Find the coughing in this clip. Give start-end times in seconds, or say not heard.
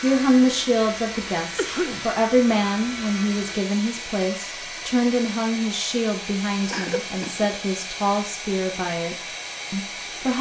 1.6-2.1, 6.7-7.5.